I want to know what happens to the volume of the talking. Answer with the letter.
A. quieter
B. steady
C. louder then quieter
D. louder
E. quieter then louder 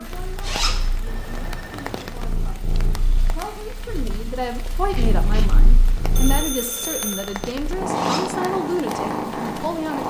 D.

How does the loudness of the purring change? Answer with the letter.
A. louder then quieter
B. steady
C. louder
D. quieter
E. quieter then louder
C.